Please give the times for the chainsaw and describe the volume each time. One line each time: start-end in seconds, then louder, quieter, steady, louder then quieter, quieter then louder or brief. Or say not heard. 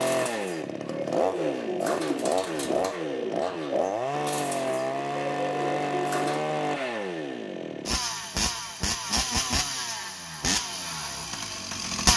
0.0-12.1 steady.